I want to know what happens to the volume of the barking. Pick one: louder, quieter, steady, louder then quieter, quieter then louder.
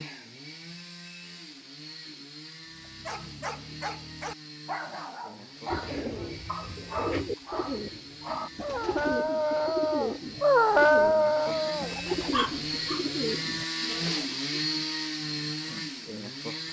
louder.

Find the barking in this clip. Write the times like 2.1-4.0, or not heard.
2.8-12.8.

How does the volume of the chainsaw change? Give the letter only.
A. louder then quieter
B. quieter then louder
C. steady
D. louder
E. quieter
D.